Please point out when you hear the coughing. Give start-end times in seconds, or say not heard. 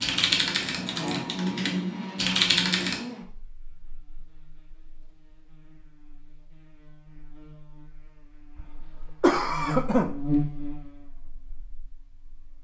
8.6-10.3.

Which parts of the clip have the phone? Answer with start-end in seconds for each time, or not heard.
not heard.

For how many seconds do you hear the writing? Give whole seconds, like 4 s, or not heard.
not heard.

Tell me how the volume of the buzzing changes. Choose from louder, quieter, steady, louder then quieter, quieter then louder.
quieter then louder.